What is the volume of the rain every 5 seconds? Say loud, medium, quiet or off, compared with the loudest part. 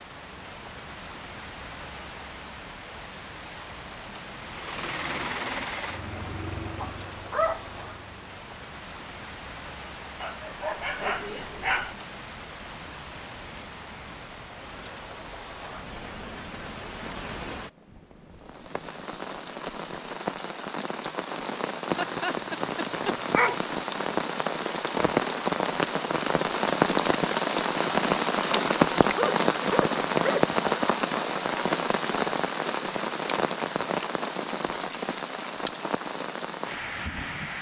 quiet, quiet, quiet, quiet, medium, loud, loud, medium.